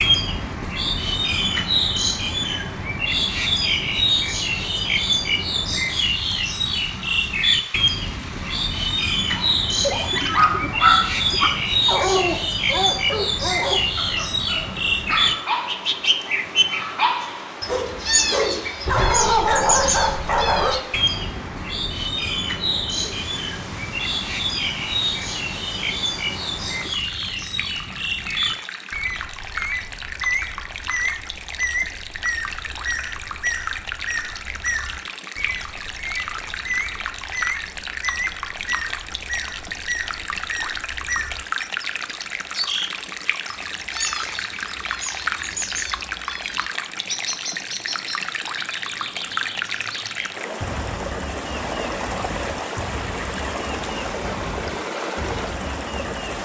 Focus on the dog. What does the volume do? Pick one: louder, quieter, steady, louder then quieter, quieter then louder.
quieter then louder.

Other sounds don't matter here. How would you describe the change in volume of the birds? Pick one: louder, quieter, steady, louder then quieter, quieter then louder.
quieter.